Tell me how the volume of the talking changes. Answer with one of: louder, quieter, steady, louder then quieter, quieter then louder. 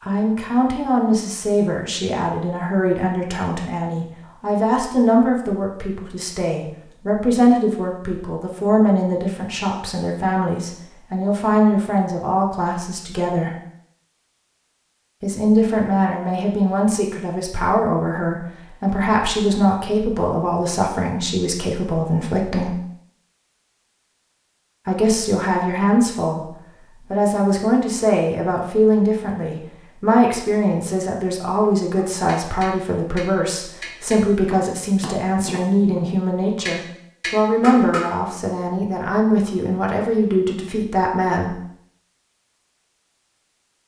steady.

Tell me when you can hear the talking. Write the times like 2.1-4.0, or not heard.
0.0-13.5, 15.2-22.8, 24.9-41.5.